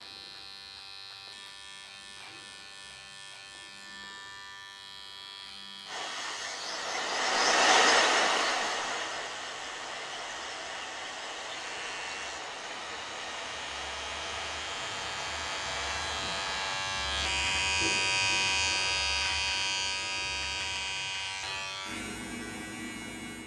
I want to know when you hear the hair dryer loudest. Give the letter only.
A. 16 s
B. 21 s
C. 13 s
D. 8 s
D.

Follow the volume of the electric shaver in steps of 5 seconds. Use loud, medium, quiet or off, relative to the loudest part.
quiet, quiet, quiet, loud, medium.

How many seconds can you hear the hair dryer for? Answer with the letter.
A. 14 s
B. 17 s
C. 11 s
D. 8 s
C.